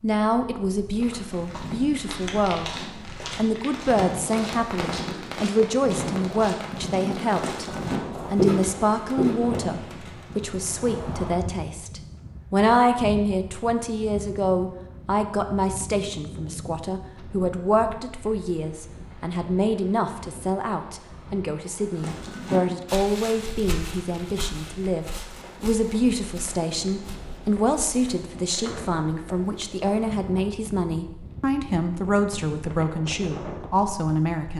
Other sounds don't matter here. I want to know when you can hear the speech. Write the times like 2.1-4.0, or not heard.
0.0-7.7, 8.3-34.5.